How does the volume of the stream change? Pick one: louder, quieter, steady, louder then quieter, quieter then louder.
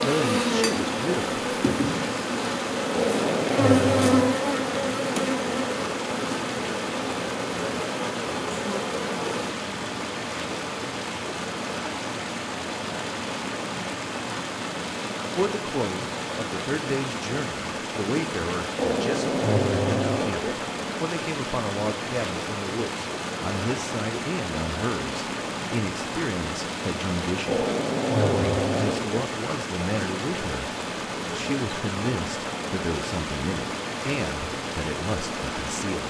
steady.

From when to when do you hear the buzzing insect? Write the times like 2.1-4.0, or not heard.
0.0-9.5.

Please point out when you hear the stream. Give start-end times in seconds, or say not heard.
0.0-36.0.